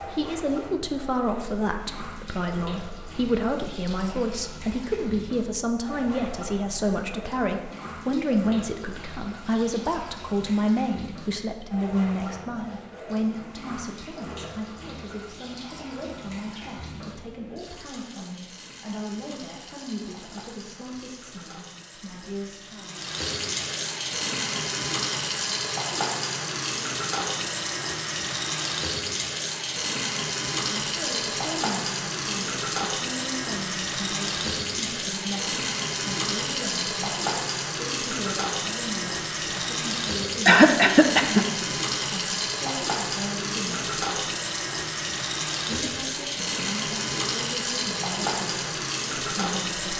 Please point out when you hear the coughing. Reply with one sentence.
You can hear the coughing from 40.5 to 41.5 s.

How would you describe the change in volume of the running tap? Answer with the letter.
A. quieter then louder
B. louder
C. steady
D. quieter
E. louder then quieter
B.